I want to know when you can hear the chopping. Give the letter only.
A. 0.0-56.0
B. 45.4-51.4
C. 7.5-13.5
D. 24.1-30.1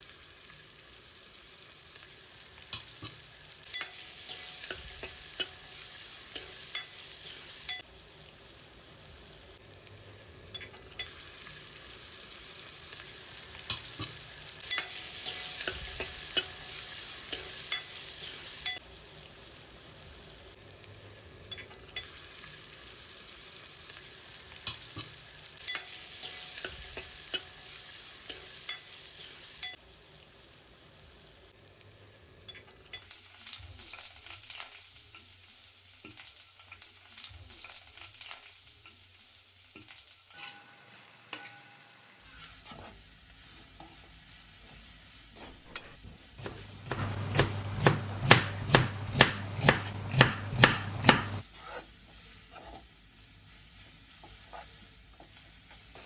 B.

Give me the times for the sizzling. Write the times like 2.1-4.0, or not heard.
0.0-56.0.